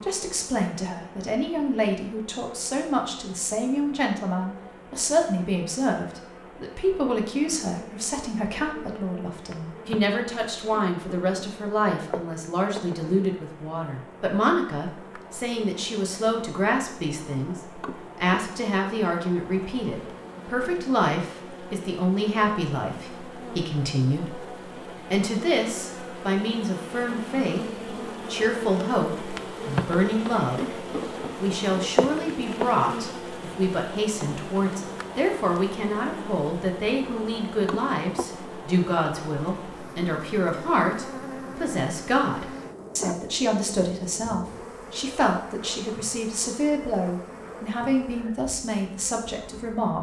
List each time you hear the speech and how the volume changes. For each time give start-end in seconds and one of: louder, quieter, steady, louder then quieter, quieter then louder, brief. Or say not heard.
0.0-49.9 steady.